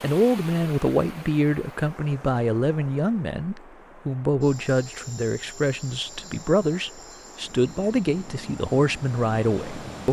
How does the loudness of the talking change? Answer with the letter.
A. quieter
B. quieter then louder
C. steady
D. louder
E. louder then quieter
C.